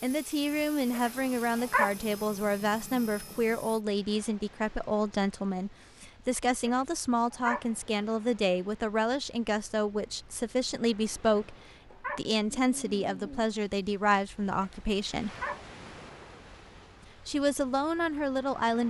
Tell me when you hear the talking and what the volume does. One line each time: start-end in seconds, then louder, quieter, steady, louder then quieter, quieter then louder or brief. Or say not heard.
0.0-15.3 steady
17.2-18.8 brief.